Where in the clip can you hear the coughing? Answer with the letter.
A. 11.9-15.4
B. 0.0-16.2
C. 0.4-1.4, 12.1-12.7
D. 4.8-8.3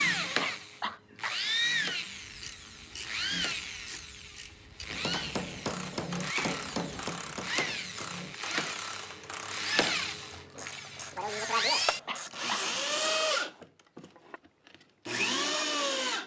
C.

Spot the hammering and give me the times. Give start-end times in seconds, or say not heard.
4.8-8.3.